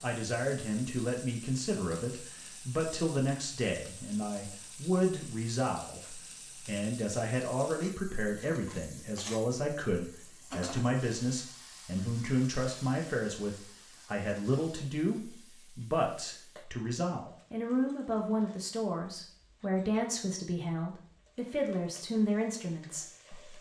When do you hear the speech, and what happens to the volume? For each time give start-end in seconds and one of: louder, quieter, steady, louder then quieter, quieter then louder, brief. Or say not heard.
0.0-23.5 steady.